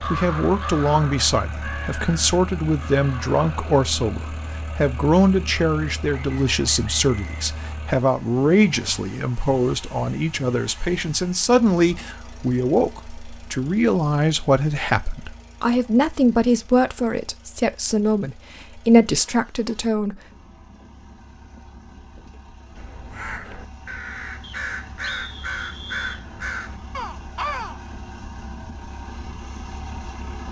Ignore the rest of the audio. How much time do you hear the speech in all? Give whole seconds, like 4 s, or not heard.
20 s.